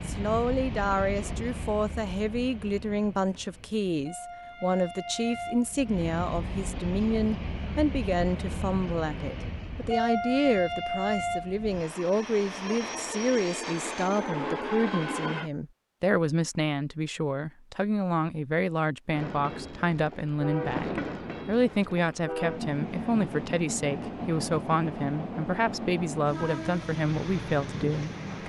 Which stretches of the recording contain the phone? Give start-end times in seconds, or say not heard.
not heard.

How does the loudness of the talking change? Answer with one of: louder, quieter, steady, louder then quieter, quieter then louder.
steady.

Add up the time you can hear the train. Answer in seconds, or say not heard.
25 s.